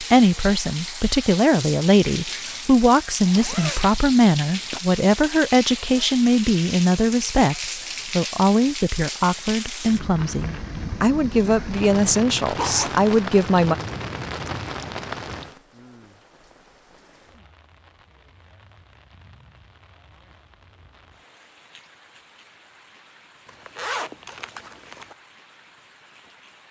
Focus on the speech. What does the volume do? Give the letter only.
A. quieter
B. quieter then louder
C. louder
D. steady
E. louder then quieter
D.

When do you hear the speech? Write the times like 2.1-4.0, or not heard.
0.0-13.8.